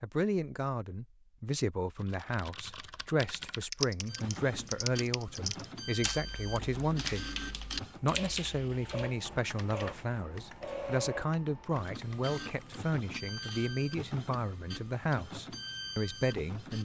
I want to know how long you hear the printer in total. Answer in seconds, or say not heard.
13 s.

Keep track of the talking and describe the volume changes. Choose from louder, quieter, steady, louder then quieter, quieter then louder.
steady.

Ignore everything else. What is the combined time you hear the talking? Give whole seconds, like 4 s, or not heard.
16 s.